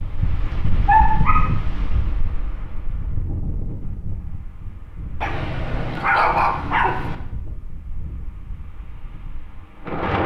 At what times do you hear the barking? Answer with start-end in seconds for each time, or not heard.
0.8-1.5, 5.2-7.2.